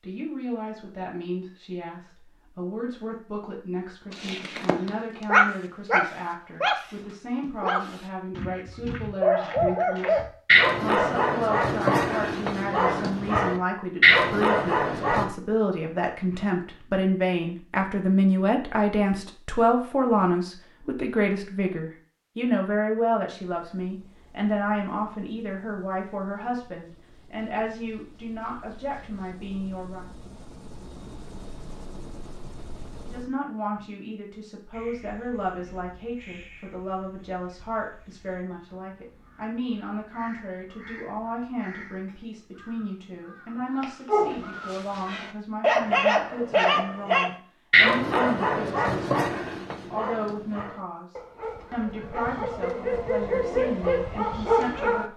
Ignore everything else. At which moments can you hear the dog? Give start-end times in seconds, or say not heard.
4.1-15.3, 44.0-55.1.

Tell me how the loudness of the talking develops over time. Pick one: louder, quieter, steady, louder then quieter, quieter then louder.
louder then quieter.